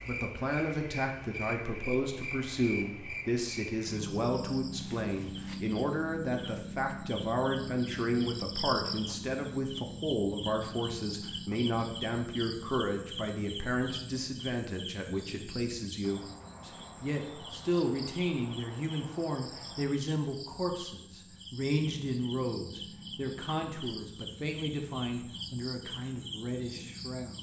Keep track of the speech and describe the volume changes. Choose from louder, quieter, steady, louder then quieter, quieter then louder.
steady.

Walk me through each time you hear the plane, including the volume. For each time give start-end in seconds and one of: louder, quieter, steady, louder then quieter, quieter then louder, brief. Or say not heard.
not heard.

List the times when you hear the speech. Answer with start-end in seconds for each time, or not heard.
0.1-27.3.